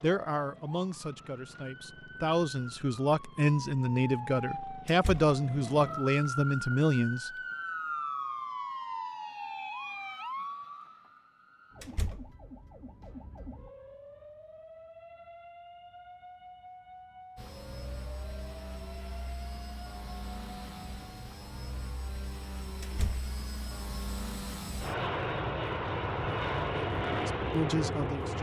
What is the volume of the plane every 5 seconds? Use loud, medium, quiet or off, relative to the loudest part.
off, off, off, quiet, medium, loud.